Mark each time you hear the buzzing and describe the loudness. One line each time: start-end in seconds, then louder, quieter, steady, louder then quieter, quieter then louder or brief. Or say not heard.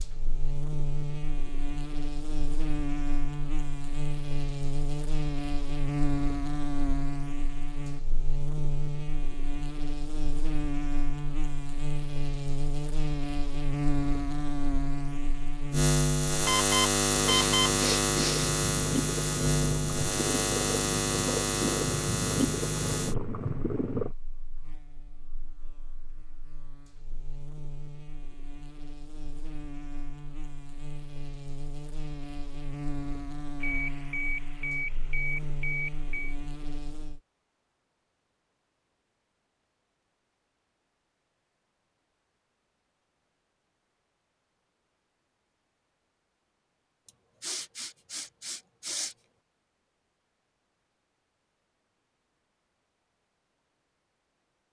0.0-37.2 louder then quieter.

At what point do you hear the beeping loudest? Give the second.
17 s.